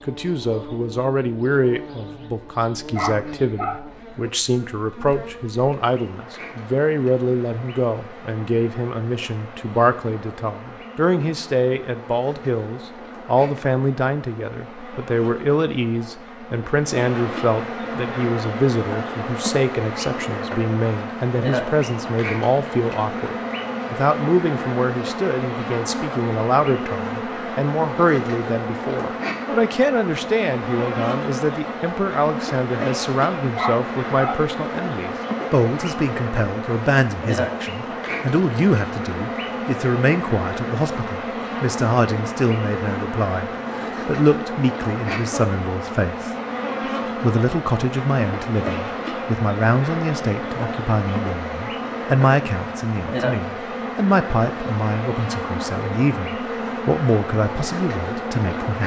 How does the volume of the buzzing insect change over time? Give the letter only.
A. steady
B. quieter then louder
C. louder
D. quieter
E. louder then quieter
C.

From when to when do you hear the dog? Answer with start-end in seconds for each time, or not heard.
3.0-3.8, 33.5-34.4.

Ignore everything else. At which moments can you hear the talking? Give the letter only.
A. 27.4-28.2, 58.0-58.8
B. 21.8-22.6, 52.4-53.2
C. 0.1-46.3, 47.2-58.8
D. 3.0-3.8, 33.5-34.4
C.